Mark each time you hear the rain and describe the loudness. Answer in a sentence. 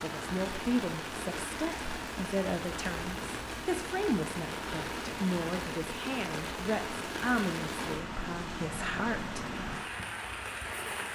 The rain can be heard from 0.0 to 11.0 s, at a steady volume.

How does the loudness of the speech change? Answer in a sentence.
The loudness of the speech stays about the same.